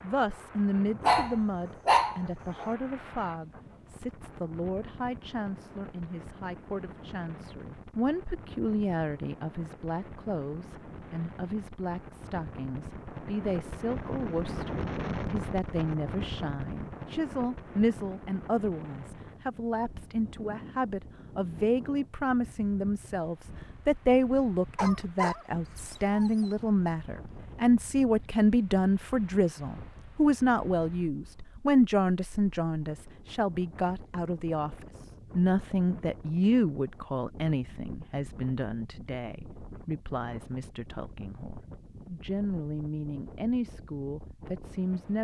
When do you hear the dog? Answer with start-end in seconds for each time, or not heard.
1.0-2.7, 24.8-26.7.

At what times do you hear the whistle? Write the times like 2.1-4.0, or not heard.
not heard.